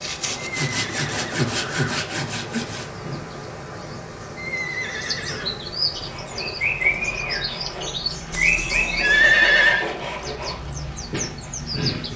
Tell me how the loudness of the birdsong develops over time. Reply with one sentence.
The loudness of the birdsong goes up, then down.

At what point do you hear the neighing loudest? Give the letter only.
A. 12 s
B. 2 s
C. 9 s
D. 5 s
C.